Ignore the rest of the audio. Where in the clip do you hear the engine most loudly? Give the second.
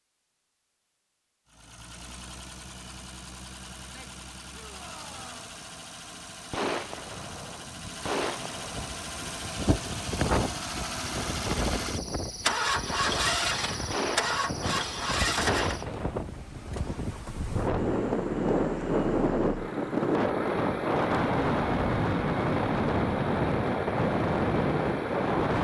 13 s.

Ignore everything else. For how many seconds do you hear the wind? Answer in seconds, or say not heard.
17 s.